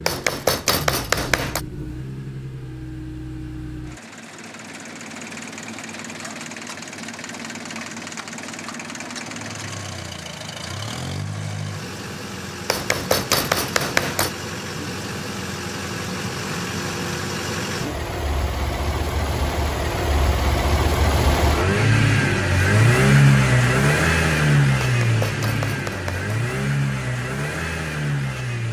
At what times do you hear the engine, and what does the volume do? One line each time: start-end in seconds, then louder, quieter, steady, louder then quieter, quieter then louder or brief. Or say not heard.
0.0-28.6 louder.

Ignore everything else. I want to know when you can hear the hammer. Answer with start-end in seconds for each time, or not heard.
0.1-1.6, 12.7-14.3, 24.8-26.4.